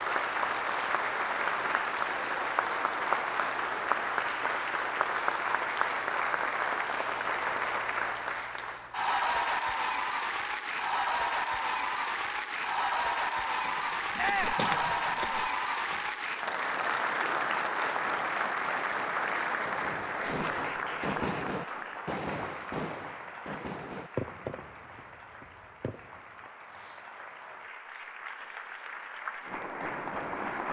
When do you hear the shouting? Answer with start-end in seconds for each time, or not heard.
14.2-14.7.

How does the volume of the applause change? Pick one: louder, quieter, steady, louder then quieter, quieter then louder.
quieter.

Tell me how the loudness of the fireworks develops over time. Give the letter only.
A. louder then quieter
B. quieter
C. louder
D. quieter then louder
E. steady
B.